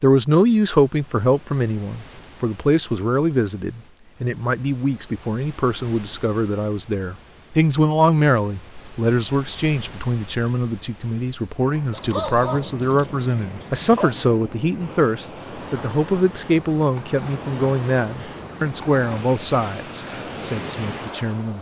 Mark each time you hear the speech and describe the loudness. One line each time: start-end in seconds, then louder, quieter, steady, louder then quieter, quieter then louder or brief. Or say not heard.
0.0-21.5 steady.